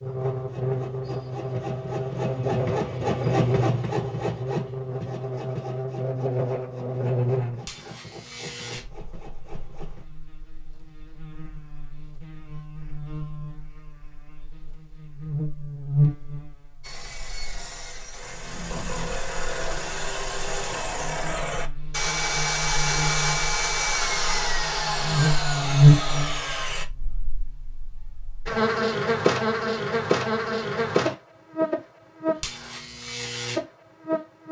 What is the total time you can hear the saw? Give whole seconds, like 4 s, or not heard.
20 s.